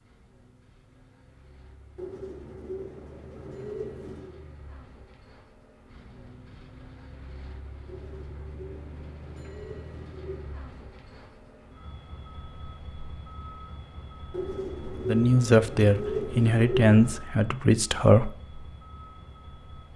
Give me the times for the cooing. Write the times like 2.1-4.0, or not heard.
1.9-4.4, 7.8-10.6, 14.3-17.2.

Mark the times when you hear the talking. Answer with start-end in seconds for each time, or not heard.
15.1-18.3.